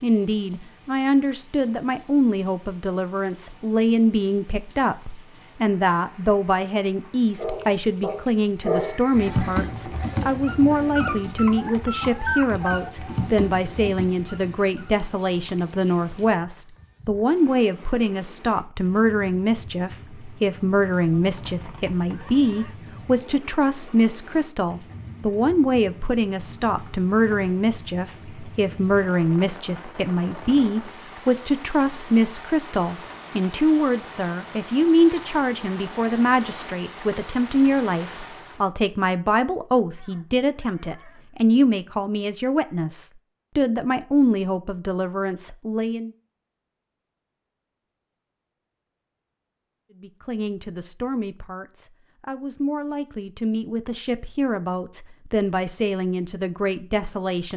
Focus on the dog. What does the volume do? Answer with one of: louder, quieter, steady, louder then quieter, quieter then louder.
quieter.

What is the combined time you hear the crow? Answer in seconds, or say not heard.
not heard.